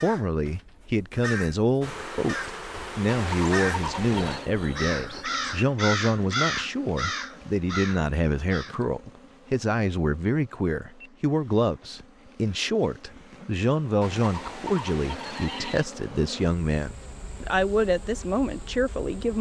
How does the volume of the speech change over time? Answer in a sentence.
The loudness of the speech stays about the same.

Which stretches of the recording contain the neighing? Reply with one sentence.
You can hear the neighing from 3.0 to 4.5 s and from 14.0 to 15.8 s.